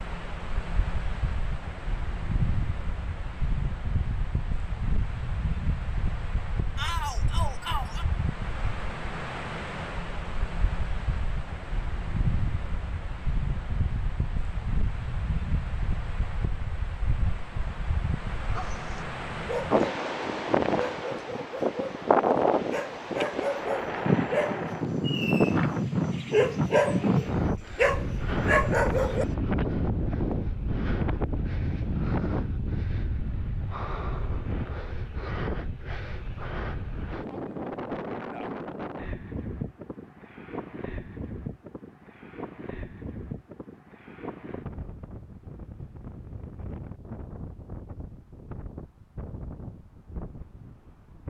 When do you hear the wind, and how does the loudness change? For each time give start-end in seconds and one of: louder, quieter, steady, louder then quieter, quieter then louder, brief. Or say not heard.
0.0-51.2 louder then quieter.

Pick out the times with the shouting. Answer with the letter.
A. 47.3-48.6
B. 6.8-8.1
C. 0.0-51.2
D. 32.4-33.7
B.